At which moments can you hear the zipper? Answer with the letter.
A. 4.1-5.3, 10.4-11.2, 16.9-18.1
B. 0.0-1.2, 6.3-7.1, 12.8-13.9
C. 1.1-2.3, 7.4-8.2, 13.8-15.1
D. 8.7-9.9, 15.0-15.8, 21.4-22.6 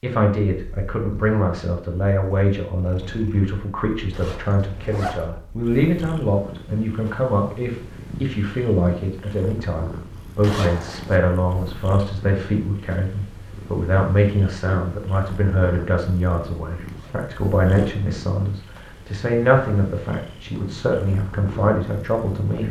A.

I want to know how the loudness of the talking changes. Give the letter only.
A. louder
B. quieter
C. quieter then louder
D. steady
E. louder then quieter
D.